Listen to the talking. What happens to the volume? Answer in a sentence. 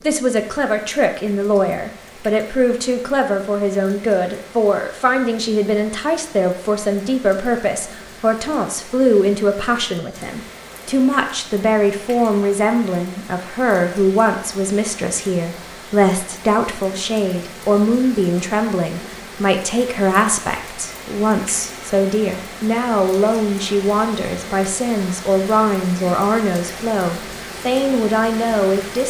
The volume of the talking stays about the same.